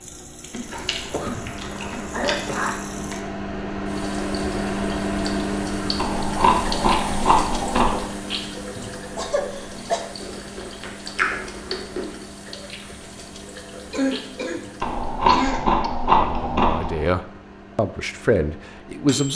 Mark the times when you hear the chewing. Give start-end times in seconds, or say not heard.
0.5-3.1, 6.0-8.1, 10.2-12.2, 14.8-17.1.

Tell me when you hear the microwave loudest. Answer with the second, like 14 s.
5 s.